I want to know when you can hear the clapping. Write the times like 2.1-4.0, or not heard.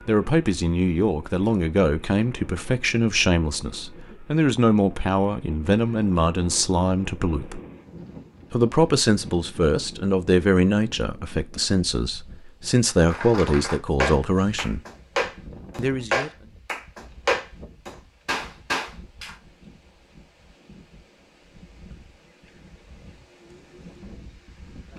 12.9-19.4.